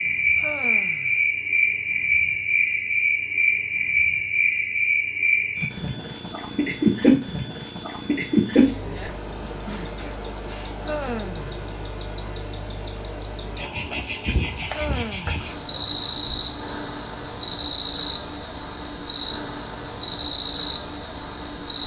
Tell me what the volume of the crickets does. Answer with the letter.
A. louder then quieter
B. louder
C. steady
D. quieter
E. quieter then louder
C.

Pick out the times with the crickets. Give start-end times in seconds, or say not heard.
0.0-21.8.